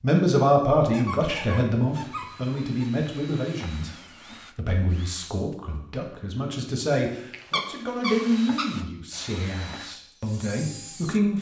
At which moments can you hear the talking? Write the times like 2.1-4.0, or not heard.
0.0-11.3.